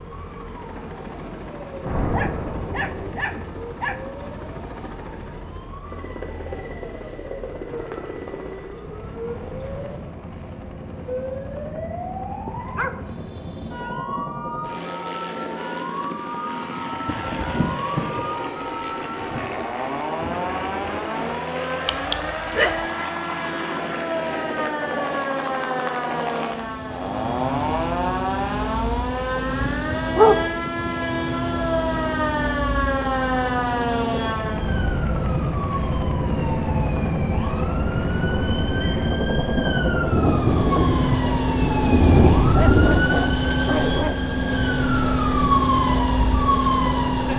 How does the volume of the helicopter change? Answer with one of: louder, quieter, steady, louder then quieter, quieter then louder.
louder.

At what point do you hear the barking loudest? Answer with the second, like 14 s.
30 s.